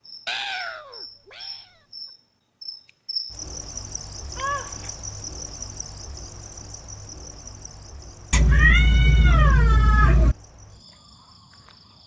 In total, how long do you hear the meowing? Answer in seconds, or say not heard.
4 s.